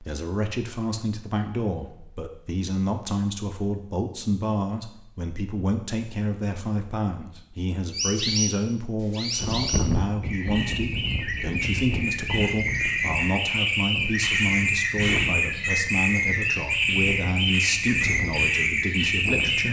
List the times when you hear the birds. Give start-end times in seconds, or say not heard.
7.9-19.6.